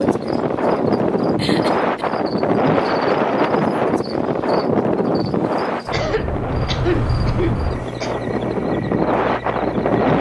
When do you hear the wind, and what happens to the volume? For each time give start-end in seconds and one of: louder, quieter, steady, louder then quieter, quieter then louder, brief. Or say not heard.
0.0-10.1 quieter then louder.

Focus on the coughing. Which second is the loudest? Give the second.
7 s.